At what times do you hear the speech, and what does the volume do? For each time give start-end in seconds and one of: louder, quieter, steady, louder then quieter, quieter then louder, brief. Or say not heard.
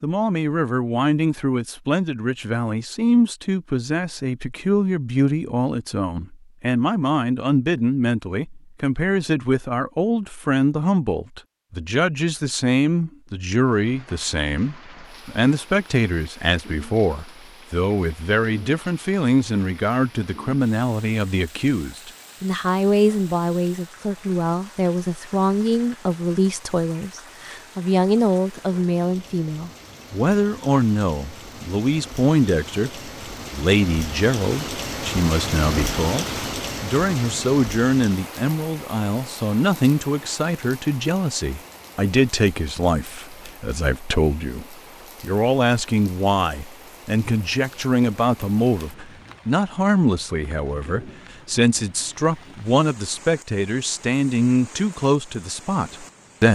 0.0-56.5 steady.